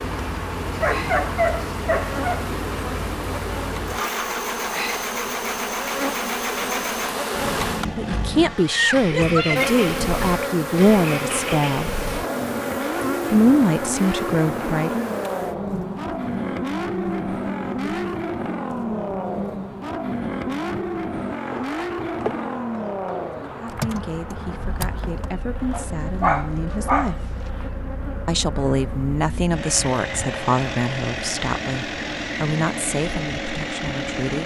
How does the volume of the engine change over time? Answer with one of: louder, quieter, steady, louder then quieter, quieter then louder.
steady.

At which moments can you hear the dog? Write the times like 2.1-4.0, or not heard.
0.8-2.5, 25.7-27.4.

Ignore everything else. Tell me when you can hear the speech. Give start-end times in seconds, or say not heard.
8.0-11.9, 13.3-15.1, 23.4-27.4, 28.2-34.4.